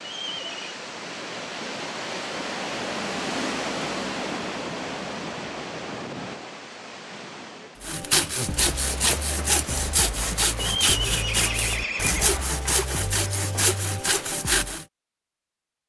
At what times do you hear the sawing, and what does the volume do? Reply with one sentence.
You can hear the sawing from 7.8 to 14.8 s, at a steady volume.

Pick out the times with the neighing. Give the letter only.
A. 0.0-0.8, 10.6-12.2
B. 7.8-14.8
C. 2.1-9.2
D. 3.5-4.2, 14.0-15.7
A.